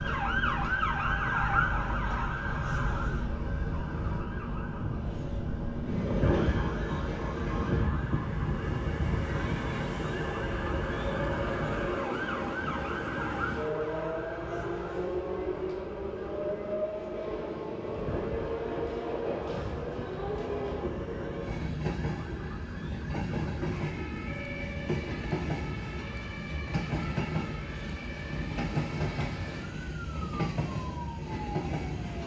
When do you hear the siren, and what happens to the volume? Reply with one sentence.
The siren can be heard from 0.0 to 32.2 s, getting quieter.